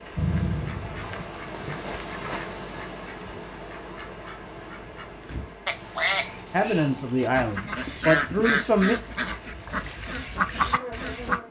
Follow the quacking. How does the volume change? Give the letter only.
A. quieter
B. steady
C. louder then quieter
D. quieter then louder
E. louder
D.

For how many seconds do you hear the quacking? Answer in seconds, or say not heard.
11 s.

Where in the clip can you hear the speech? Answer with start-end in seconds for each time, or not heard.
6.5-8.9.